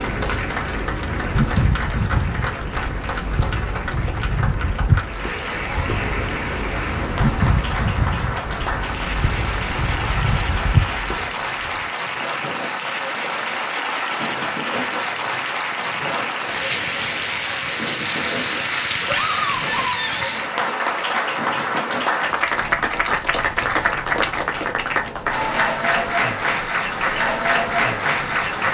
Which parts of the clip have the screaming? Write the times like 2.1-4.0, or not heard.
5.6-6.1, 19.1-20.3.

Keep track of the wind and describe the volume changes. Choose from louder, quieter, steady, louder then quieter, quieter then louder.
quieter.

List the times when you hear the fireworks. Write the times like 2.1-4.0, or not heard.
not heard.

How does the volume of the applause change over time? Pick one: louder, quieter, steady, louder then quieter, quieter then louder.
louder.